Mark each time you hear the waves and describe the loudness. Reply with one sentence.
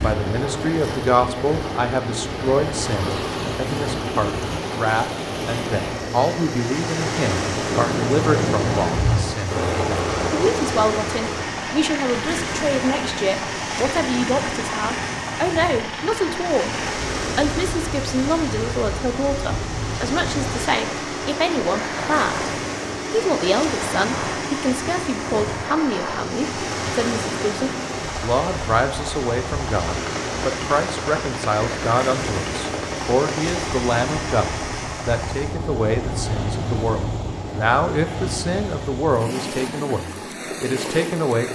The waves can be heard from 0.0 to 41.5 s, at a steady volume.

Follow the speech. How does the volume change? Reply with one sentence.
The volume of the speech stays about the same.